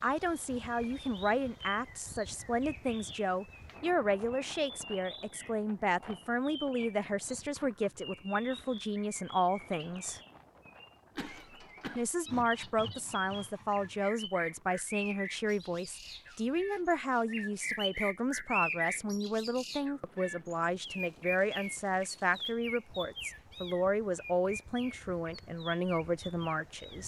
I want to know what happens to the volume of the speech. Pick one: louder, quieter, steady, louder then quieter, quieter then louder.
steady.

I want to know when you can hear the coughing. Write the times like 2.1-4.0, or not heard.
11.2-12.1.